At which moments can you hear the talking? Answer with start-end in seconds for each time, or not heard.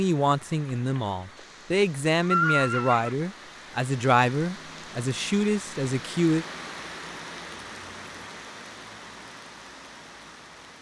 0.0-6.5.